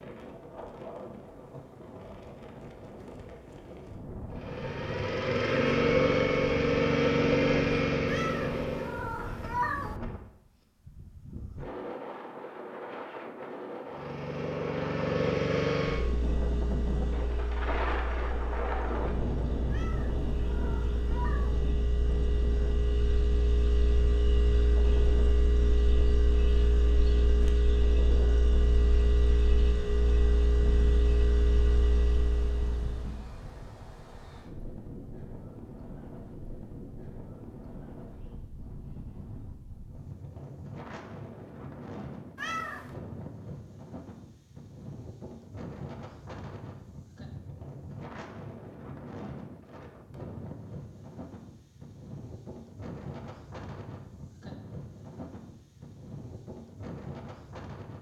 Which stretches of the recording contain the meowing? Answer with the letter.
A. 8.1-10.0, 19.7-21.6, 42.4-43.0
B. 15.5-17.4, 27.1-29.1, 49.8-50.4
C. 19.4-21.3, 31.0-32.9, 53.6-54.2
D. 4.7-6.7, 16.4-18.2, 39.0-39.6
A.